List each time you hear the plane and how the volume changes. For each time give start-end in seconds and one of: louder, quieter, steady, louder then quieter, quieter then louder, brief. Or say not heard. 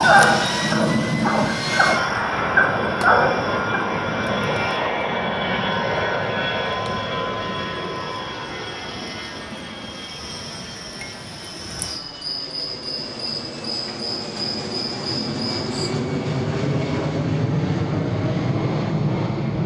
0.0-19.6 quieter then louder.